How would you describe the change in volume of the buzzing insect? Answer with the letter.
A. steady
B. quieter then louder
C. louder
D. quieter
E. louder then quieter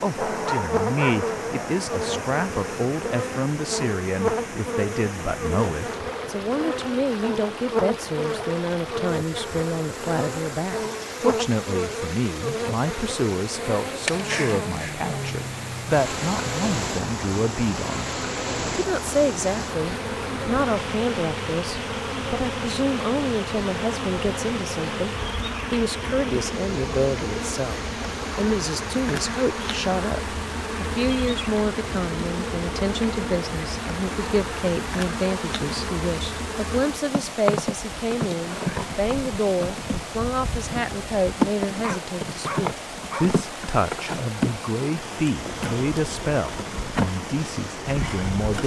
A.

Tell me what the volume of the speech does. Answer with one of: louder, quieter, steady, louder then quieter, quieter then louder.
steady.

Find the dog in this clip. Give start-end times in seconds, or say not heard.
0.1-2.2, 41.8-43.4.